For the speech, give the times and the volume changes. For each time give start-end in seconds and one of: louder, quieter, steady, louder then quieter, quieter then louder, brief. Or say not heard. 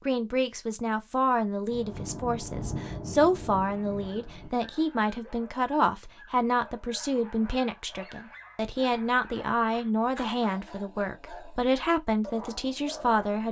0.1-13.4 steady.